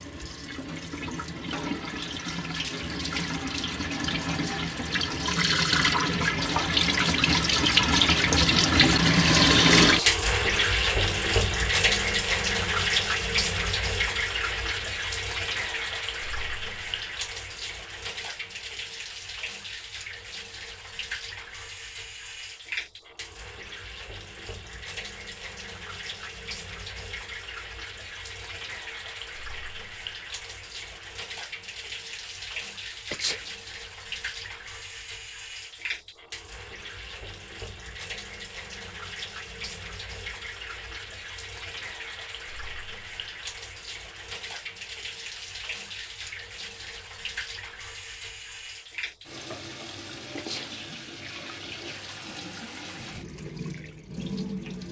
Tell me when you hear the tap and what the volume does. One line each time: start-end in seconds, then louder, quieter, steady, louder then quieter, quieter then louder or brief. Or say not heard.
0.0-54.8 quieter.